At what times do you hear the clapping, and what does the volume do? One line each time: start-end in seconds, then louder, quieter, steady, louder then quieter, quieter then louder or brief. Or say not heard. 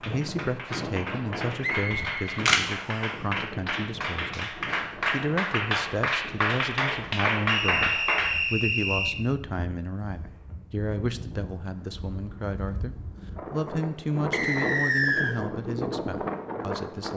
0.0-8.3 louder.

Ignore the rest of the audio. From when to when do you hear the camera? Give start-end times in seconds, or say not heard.
1.9-2.6.